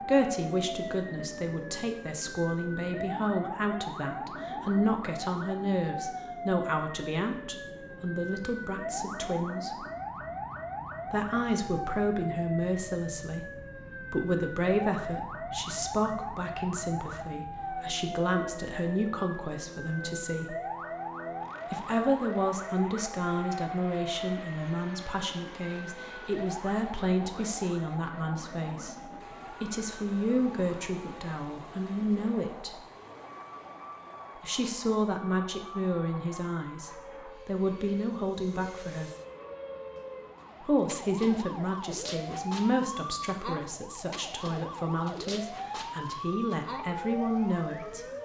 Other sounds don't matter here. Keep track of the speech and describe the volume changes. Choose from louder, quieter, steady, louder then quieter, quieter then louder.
steady.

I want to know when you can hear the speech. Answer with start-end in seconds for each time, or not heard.
0.0-9.8, 11.1-20.6, 21.7-28.9, 29.6-32.8, 34.4-39.1, 40.6-48.0.